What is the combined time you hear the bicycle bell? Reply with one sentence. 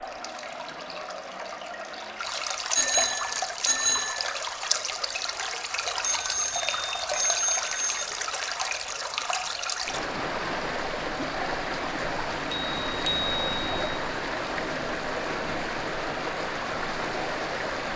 You can hear the bicycle bell for 5 seconds altogether.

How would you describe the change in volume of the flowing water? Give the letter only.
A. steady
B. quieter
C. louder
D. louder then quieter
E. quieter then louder
A.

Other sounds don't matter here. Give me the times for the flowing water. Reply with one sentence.
You can hear the flowing water from 0.0 to 17.9 s.